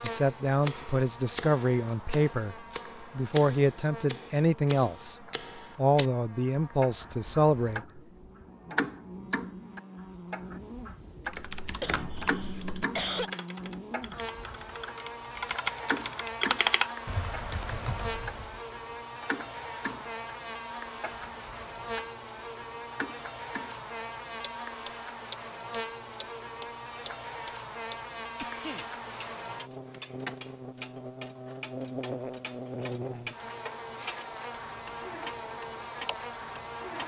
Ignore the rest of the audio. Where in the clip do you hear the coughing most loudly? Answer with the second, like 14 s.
13 s.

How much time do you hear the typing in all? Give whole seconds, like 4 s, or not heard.
7 s.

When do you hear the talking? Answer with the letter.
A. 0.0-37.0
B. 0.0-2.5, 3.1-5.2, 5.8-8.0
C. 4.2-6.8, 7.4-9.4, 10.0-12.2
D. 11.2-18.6
B.